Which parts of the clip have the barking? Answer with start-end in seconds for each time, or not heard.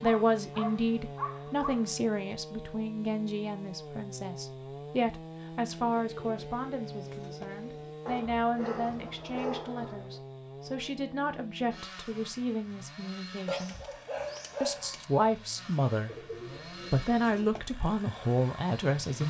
0.0-1.9, 8.1-10.2, 13.4-15.1.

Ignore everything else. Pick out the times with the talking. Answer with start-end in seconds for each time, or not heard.
0.0-13.8, 14.6-16.2, 16.9-19.2.